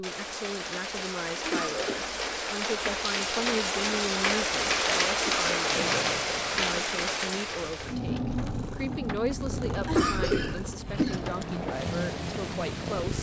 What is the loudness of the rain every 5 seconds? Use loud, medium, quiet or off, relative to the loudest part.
loud, loud, medium.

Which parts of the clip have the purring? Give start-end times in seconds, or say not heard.
5.7-13.1.